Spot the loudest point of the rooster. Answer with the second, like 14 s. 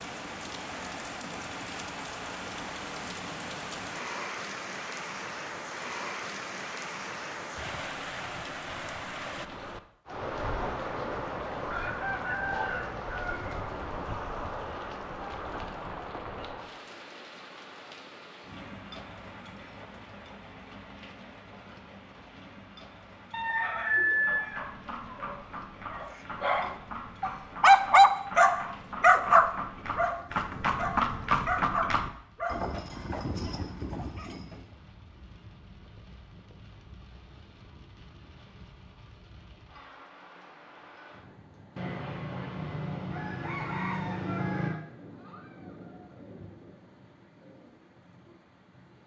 24 s.